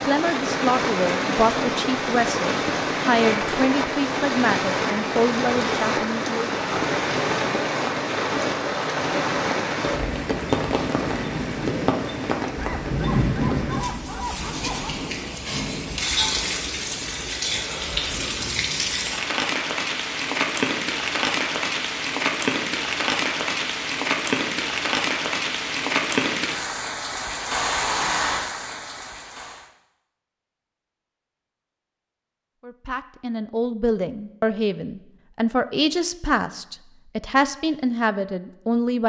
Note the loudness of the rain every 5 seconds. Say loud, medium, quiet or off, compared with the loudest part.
loud, loud, loud, loud, loud, loud, off, off.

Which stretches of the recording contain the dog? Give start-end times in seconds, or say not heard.
12.6-15.1.